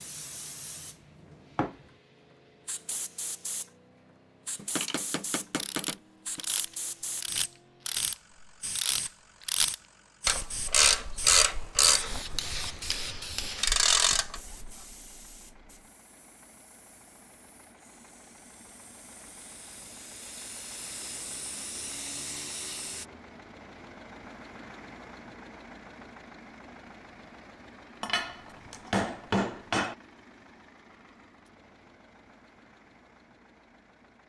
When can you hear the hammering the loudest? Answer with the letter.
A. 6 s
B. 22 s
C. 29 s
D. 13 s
C.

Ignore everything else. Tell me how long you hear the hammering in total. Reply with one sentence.
The hammering can be heard for 6 seconds in total.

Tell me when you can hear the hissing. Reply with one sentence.
The hissing can be heard from 0.0 to 23.1 s.